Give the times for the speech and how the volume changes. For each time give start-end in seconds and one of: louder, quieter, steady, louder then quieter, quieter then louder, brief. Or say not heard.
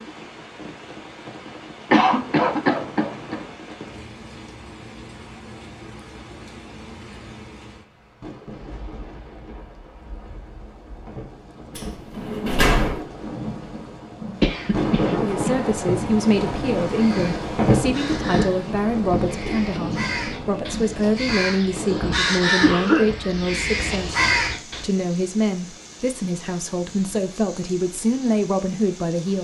15.2-29.3 steady.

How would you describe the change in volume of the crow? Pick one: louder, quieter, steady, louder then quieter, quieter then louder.
louder.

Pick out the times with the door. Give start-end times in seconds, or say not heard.
11.8-13.1.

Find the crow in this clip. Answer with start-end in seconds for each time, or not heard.
16.9-24.9.